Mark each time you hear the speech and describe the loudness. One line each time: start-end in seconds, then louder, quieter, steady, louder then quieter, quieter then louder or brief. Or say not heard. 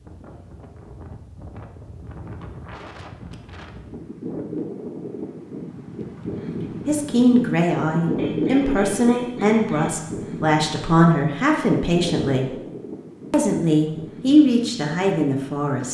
6.8-12.4 steady
13.3-15.8 brief.